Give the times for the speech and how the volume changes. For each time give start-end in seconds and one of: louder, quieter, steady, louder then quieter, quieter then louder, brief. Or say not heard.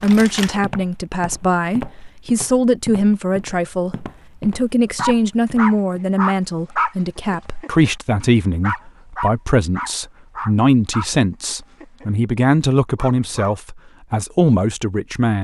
0.0-15.3 steady.